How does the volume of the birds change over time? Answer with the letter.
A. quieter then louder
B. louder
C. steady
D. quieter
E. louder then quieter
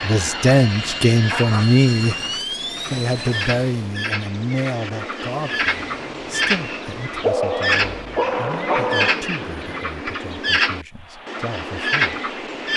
B.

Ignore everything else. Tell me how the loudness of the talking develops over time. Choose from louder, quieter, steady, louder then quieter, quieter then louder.
quieter.